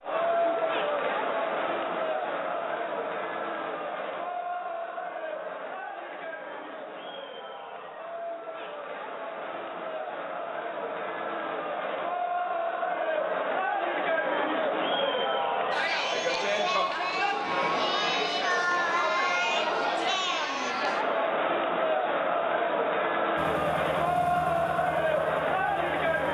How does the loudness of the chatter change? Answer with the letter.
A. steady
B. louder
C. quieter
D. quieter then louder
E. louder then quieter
D.